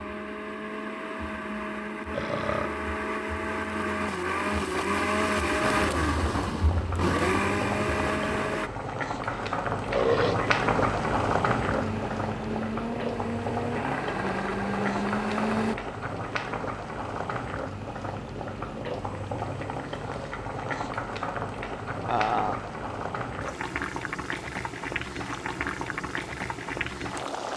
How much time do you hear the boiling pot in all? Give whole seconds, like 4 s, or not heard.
22 s.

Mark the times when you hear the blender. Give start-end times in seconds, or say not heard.
0.0-8.7, 11.7-15.8.